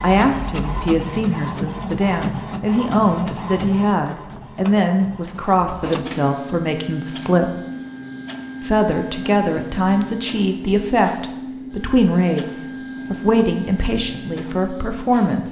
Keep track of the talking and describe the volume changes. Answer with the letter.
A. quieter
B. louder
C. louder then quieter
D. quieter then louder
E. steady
E.